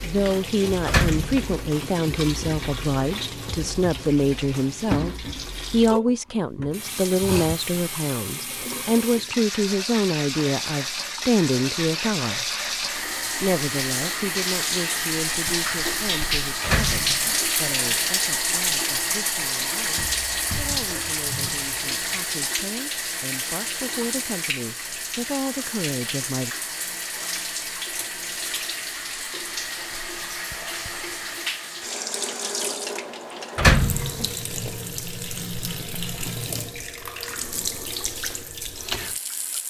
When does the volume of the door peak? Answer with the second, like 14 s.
34 s.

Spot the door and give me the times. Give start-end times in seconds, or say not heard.
0.8-1.6, 16.6-17.4, 33.5-34.3.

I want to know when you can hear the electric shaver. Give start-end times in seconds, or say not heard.
not heard.